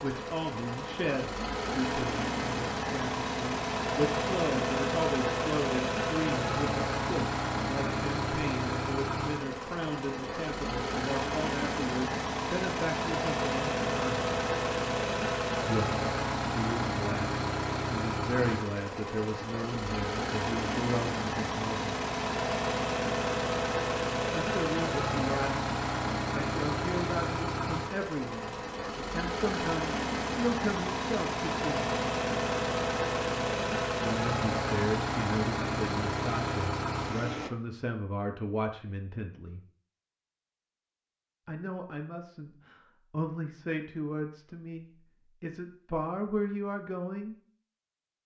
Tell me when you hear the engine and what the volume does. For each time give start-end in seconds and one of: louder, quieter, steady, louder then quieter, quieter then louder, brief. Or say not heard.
0.0-37.5 steady.